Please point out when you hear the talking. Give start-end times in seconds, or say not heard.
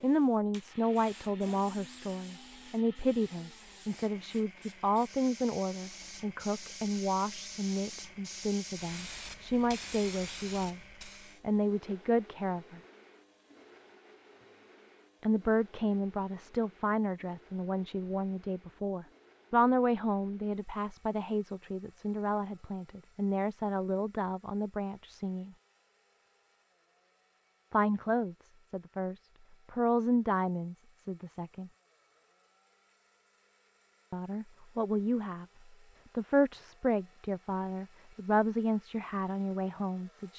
0.0-12.8, 15.2-25.6, 27.7-31.7, 34.1-35.5, 36.1-40.3.